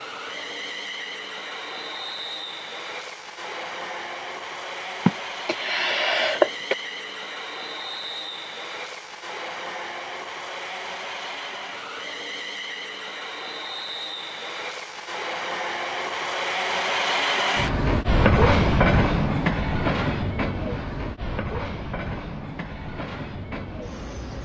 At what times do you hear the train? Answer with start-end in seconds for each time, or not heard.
0.0-24.4.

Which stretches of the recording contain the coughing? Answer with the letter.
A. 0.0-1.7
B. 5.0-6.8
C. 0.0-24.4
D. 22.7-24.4
B.